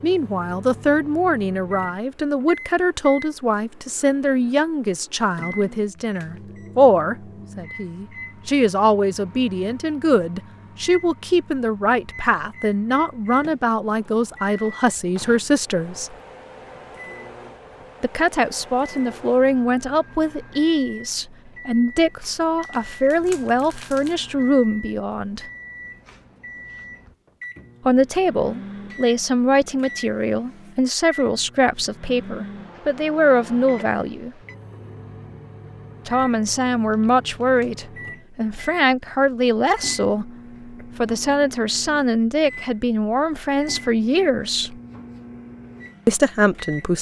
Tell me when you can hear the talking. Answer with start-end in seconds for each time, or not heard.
0.0-16.1, 18.0-25.4, 27.9-34.3, 36.0-44.8, 46.0-46.9.